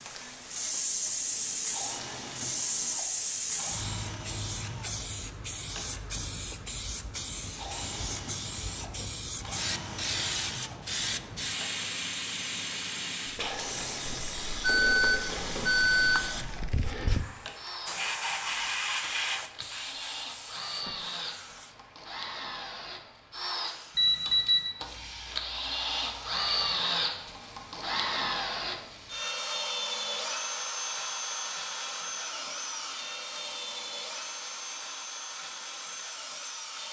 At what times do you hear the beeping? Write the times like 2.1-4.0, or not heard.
14.6-16.2, 23.9-24.8.